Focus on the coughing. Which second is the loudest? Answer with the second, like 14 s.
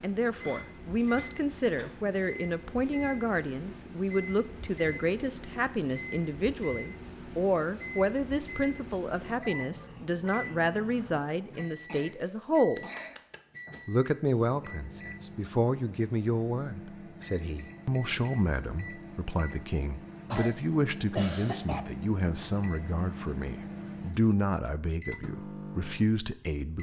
21 s.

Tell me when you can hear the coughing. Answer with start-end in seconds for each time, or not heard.
0.4-1.9, 11.7-13.2, 20.3-21.9.